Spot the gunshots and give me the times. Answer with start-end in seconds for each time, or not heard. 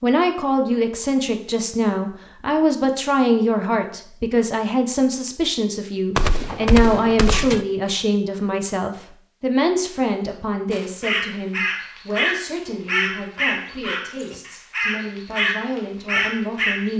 6.2-7.7.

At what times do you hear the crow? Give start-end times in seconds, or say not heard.
10.7-16.9.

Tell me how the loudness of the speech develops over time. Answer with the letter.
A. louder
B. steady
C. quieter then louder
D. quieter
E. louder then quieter
D.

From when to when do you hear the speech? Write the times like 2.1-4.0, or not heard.
0.0-16.9.